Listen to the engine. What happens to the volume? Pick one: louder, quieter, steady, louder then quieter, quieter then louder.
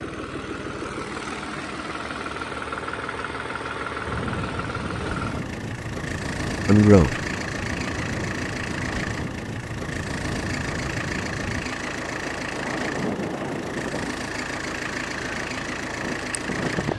steady.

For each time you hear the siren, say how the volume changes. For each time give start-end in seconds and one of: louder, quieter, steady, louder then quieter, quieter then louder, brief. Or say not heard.
not heard.